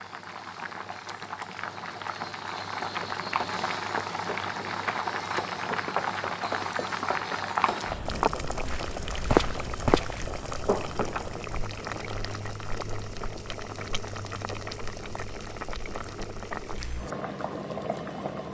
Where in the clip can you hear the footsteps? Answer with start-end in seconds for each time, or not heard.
2.8-11.2.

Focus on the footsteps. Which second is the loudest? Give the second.
9 s.